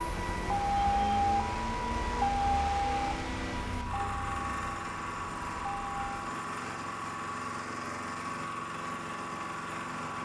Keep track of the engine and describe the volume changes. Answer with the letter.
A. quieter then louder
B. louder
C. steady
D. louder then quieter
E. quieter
C.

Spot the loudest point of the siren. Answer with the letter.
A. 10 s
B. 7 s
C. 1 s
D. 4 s
C.